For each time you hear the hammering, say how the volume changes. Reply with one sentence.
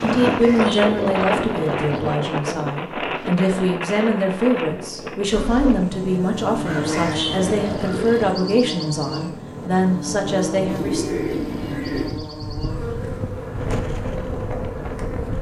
You can't hear the hammering here.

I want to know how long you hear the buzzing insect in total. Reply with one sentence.
You can hear the buzzing insect for 10 seconds altogether.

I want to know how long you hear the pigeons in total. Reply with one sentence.
You can hear the pigeons for 5 seconds altogether.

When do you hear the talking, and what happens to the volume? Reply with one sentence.
You can hear the talking from 0.0 to 11.1 s, at a steady volume.